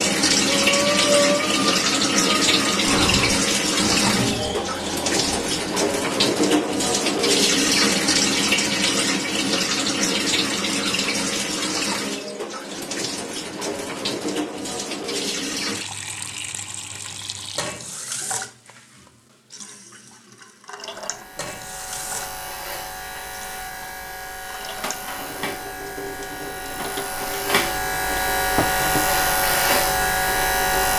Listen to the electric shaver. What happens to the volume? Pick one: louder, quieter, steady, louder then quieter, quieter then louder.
louder.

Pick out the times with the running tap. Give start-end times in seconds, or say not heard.
0.0-30.9.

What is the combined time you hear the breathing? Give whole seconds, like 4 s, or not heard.
5 s.